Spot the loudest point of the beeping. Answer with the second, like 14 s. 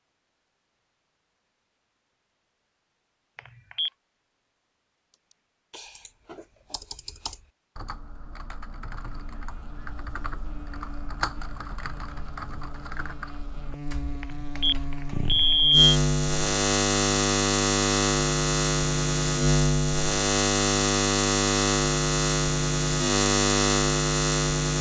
16 s.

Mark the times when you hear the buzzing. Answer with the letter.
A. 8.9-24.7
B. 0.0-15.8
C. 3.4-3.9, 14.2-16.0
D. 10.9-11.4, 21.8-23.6
A.